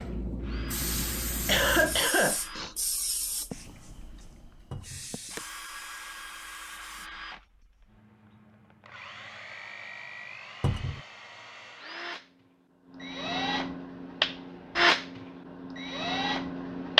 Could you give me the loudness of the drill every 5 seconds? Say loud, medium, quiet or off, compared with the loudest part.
quiet, quiet, loud, loud.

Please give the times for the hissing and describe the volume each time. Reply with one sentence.
The hissing can be heard from 0.0 to 7.1 s, getting quieter.